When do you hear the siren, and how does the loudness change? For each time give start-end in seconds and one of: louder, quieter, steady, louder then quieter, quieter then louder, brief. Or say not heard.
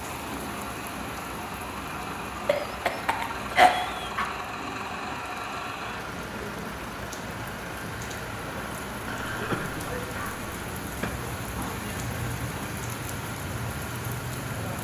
not heard.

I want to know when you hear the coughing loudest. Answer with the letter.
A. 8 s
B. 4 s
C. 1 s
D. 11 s
B.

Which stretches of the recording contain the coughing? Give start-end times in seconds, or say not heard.
2.5-4.3, 9.1-11.1.